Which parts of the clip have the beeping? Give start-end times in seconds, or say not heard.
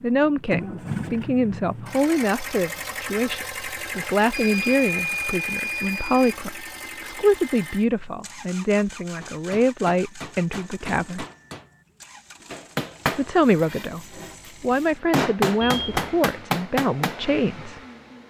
4.3-6.3, 15.6-16.1.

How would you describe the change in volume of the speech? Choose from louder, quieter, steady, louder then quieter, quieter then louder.
steady.